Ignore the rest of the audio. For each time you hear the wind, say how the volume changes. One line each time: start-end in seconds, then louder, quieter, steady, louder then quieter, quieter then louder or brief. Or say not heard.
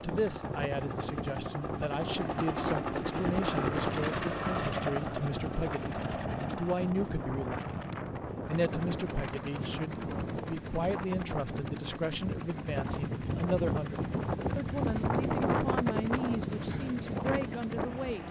0.0-18.2 louder.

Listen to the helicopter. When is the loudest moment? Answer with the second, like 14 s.
4 s.